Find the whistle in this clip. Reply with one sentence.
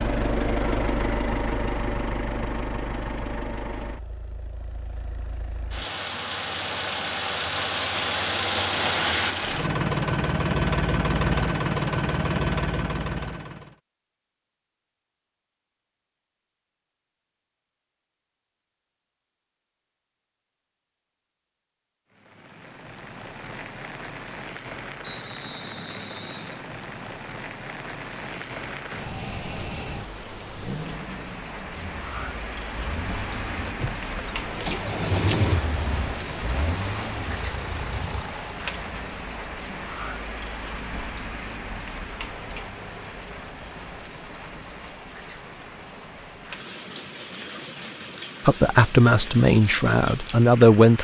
You can hear the whistle from 25.0 to 26.6 s.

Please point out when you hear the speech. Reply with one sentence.
You can hear the speech from 48.5 to 50.9 s.